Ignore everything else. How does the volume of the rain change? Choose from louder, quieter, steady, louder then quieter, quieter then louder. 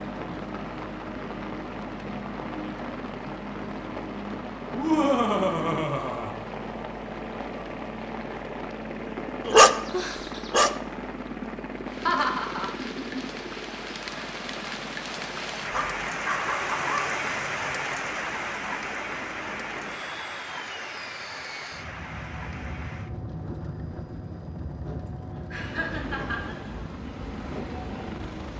louder then quieter.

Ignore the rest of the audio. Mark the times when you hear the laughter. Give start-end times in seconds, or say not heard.
4.7-6.3, 12.1-13.4, 25.5-26.8.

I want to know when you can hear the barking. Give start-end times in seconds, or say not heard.
9.4-10.8, 15.7-17.1.